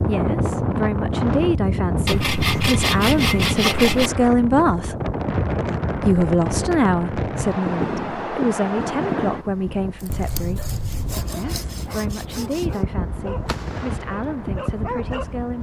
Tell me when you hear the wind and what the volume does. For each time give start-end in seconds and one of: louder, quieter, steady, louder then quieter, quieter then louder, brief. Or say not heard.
0.0-15.5 quieter.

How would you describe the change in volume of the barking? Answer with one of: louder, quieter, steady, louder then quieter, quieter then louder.
louder.